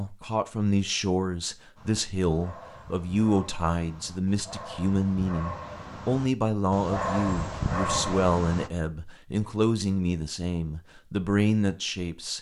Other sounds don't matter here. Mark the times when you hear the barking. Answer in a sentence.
The barking can be heard from 1.8 to 8.7 s.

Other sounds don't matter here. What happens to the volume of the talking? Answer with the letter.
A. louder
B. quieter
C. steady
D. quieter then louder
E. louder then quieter
C.